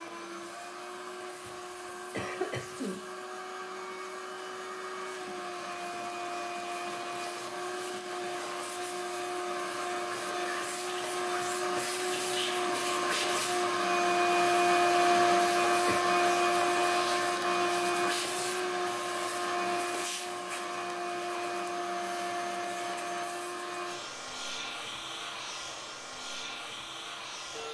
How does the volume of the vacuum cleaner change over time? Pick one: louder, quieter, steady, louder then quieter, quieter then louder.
louder then quieter.